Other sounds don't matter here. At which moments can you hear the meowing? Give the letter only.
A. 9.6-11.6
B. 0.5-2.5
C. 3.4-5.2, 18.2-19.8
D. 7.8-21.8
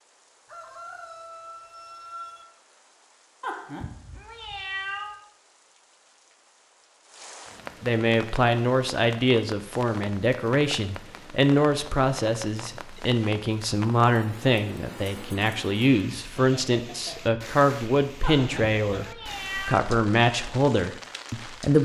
C.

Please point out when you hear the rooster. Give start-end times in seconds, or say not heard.
0.5-2.5.